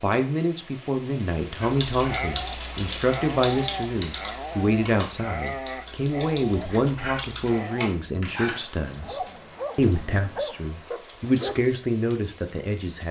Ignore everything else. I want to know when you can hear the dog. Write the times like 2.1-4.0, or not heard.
1.6-11.6.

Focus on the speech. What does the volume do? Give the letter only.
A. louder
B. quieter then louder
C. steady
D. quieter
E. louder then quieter
C.